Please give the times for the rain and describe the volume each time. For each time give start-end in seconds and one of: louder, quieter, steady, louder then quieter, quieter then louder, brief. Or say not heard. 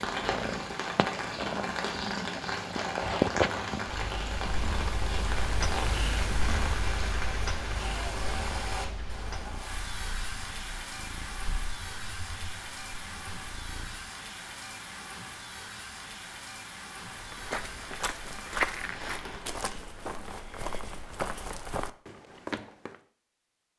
0.0-19.6 quieter.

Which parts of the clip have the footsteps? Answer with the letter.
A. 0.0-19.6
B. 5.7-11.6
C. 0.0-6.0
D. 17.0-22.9
D.